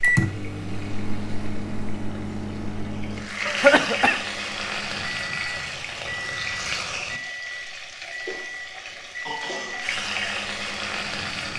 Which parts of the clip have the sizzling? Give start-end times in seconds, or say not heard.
0.0-11.5.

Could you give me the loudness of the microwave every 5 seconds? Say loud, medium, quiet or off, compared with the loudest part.
loud, medium, quiet.